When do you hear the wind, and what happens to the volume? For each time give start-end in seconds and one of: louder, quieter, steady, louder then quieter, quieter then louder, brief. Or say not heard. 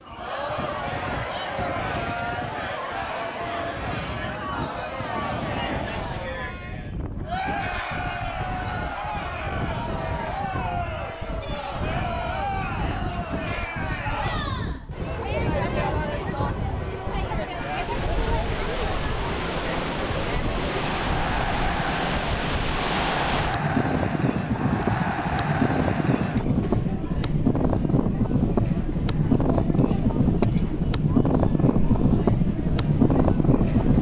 0.0-33.9 louder.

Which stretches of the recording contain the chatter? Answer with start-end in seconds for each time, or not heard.
0.0-33.9.